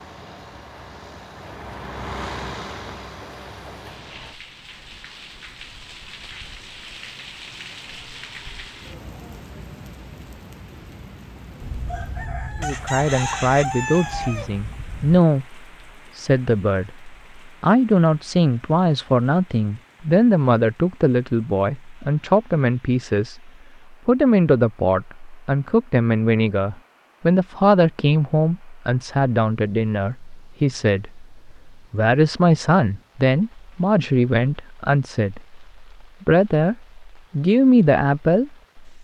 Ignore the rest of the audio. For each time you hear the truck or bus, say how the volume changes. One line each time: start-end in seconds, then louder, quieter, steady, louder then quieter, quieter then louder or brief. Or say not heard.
0.0-4.4 louder then quieter.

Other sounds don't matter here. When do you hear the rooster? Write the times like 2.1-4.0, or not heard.
11.6-15.2.